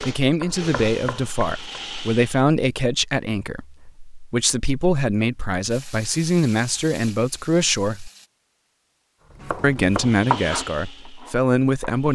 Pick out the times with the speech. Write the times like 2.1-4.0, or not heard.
0.0-8.1, 9.6-12.1.